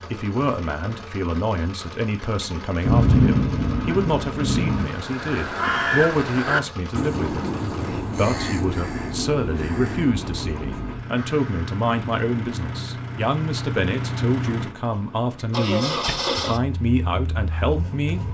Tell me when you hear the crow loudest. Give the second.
6 s.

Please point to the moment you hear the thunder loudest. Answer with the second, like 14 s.
3 s.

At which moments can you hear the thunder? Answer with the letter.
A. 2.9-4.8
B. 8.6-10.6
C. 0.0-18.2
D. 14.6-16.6
A.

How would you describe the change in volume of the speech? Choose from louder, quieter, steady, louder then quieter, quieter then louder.
steady.